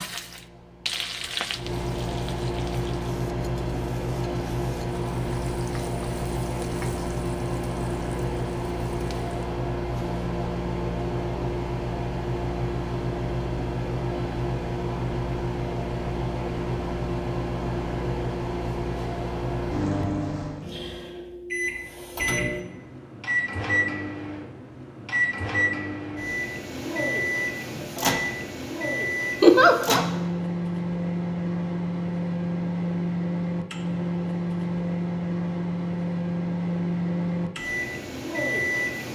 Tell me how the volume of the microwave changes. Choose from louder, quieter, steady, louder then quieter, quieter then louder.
steady.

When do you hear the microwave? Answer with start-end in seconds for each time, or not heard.
0.0-39.1.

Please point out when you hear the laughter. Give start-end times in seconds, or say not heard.
29.4-30.1.